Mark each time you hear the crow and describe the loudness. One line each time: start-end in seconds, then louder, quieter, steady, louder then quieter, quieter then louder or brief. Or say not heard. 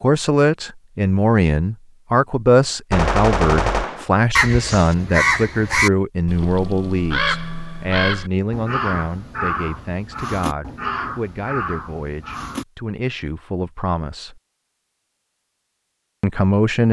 4.3-12.7 quieter.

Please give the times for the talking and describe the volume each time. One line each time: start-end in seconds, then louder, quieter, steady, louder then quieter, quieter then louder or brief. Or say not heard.
0.0-14.4 quieter
16.2-16.8 brief.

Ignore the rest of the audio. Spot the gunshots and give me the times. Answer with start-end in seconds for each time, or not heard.
2.9-4.0.